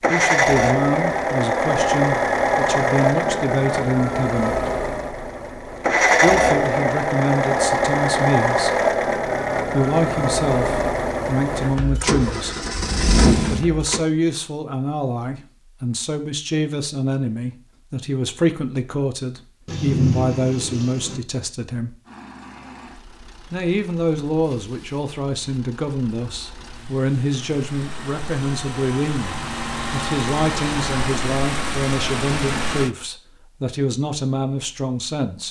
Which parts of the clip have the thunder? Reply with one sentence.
The thunder can be heard from 19.6 to 21.2 s.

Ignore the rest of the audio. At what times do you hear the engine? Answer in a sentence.
You can hear the engine from 0.0 to 14.0 s and from 22.1 to 32.9 s.